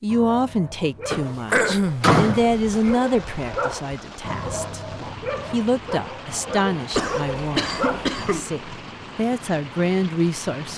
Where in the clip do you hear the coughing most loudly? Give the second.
2 s.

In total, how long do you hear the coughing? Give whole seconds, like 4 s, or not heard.
2 s.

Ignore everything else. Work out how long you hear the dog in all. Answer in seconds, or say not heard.
8 s.